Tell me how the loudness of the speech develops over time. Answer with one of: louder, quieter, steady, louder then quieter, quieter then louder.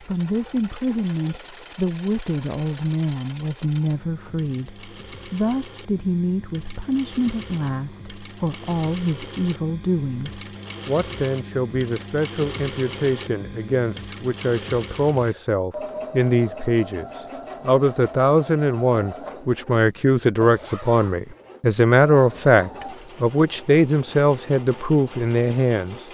louder.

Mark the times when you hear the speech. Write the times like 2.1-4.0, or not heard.
0.0-26.0.